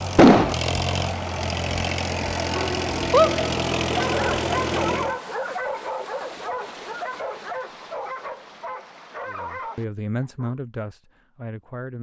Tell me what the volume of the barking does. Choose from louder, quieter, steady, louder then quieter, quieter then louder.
quieter.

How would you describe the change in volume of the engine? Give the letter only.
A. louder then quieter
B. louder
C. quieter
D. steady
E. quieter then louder
D.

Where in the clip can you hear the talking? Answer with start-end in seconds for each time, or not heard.
9.2-11.9.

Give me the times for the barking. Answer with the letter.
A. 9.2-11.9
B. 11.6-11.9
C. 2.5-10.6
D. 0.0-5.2
C.